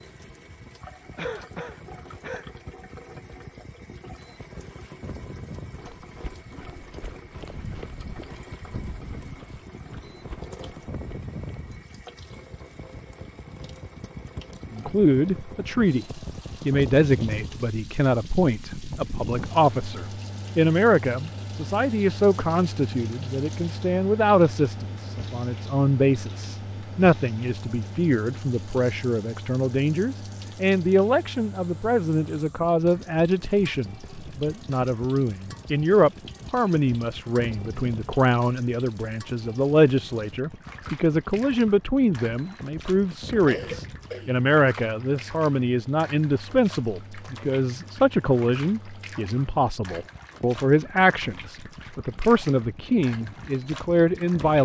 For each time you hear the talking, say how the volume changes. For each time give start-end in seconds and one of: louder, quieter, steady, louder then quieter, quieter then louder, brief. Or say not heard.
14.7-54.6 steady.